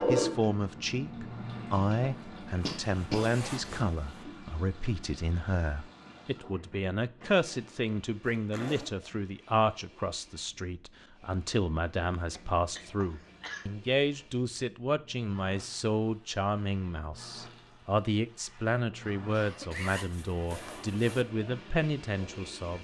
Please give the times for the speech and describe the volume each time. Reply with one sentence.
The speech can be heard from 0.1 to 22.7 s, at a steady volume.